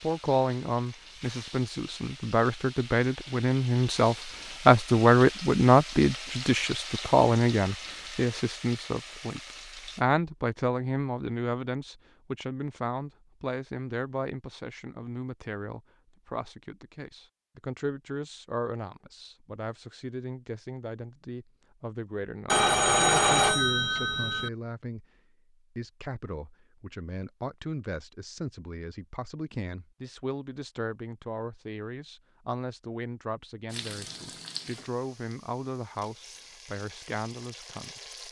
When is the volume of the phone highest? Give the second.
23 s.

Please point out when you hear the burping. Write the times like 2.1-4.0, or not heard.
not heard.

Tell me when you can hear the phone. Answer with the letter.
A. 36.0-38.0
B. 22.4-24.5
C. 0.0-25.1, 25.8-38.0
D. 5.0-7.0
B.